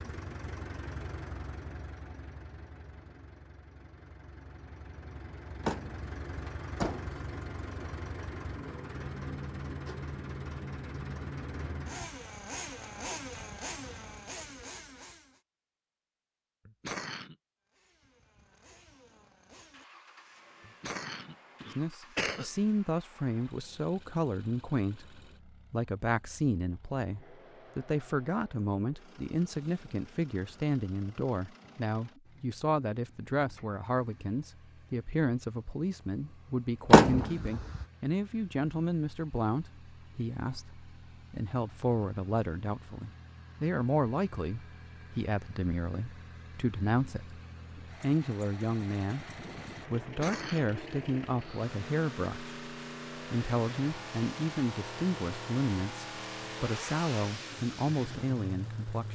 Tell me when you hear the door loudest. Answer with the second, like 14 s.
37 s.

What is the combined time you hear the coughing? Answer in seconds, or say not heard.
3 s.